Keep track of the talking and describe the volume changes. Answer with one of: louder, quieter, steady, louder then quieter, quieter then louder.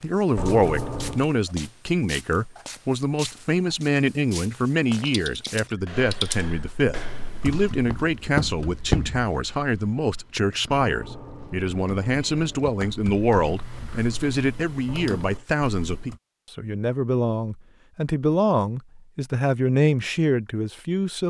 steady.